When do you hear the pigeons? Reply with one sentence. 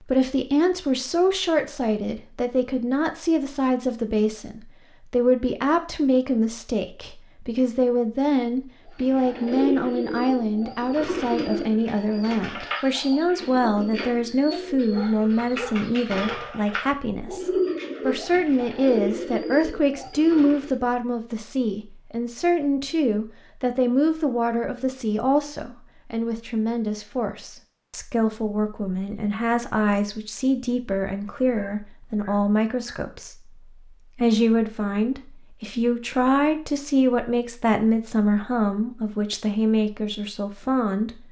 You can hear the pigeons from 8.9 to 20.8 s.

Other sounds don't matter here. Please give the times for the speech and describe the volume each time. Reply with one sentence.
The speech can be heard from 0.0 to 41.2 s, at a steady volume.